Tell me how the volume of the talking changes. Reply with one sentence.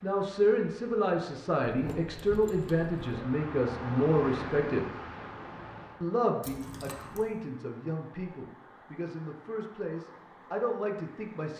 The loudness of the talking goes down.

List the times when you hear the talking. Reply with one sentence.
The talking can be heard from 0.0 to 4.8 s and from 6.0 to 11.5 s.